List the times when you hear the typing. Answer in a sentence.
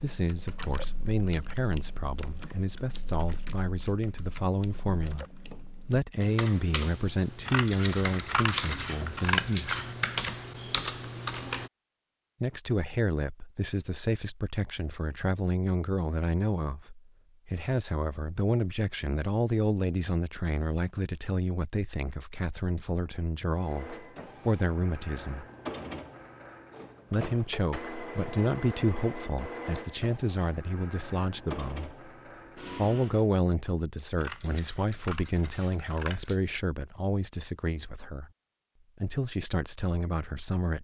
You can hear the typing from 0.0 to 11.7 s.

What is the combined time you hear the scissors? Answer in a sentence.
The scissors can be heard for 5 seconds in total.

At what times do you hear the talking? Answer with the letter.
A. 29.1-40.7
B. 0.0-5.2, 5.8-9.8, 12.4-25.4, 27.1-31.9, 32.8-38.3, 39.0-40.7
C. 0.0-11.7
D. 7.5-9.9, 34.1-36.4
B.